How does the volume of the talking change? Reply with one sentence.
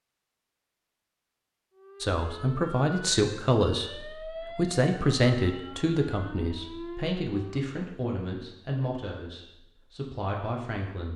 The volume of the talking goes down.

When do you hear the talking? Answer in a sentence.
You can hear the talking from 2.0 to 11.1 s.